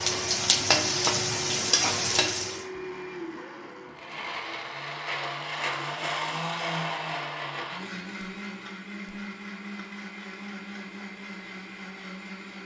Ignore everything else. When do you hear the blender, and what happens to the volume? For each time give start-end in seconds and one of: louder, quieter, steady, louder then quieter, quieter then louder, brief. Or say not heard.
0.0-12.6 louder then quieter.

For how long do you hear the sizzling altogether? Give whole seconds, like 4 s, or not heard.
3 s.